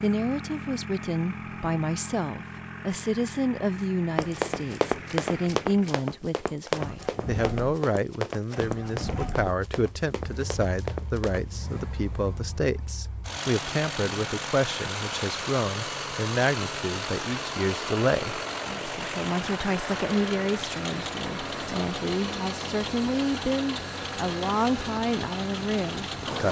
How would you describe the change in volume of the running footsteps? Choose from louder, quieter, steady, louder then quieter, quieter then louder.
quieter.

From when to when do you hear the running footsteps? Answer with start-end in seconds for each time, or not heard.
4.2-11.4.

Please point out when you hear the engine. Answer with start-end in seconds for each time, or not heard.
0.0-26.4.